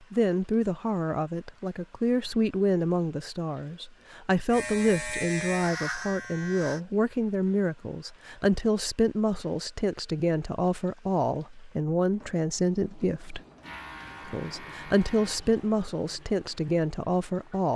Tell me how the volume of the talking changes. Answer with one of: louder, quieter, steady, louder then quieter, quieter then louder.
steady.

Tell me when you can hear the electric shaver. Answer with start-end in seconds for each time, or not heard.
4.5-6.8, 13.6-15.4.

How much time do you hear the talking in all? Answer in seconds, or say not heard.
17 s.